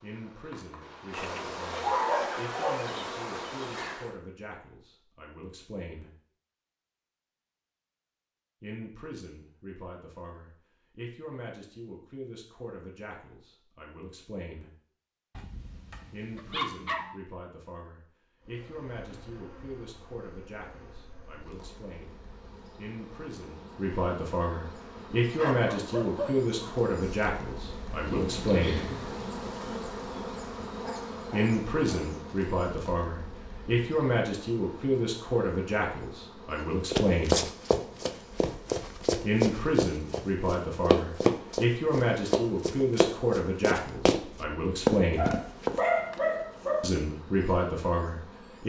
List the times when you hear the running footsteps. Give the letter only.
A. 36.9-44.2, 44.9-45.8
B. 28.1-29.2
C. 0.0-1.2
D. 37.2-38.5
A.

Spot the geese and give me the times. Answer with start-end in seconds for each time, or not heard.
28.1-29.2.